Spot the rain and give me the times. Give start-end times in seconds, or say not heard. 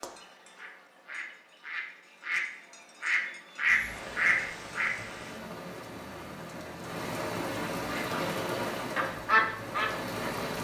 3.6-10.5.